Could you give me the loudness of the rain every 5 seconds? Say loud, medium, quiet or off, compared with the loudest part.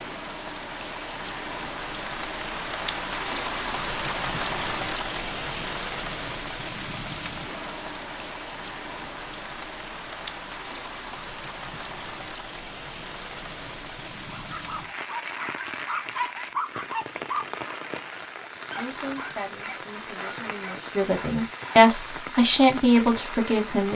loud, loud, medium, medium, medium.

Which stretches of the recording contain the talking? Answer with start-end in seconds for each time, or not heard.
18.8-23.9.